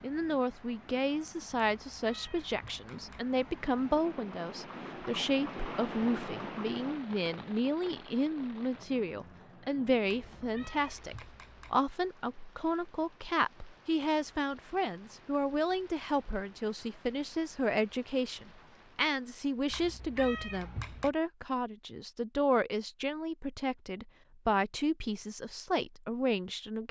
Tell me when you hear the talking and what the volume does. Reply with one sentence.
The talking can be heard from 0.0 to 26.8 s, at a steady volume.